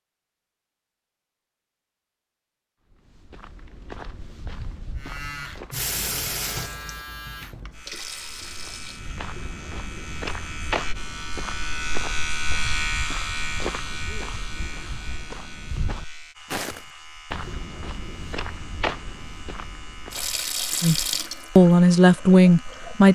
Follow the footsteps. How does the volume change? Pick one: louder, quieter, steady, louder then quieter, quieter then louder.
louder.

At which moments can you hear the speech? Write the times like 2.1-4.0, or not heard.
20.8-23.0.